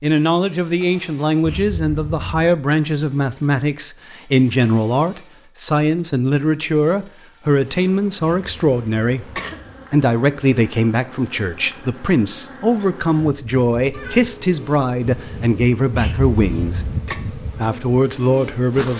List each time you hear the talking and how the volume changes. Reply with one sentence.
The talking can be heard from 0.0 to 18.9 s, at a steady volume.